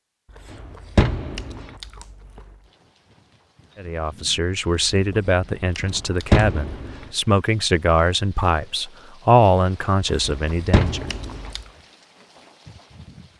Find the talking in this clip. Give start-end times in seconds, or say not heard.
3.8-11.1.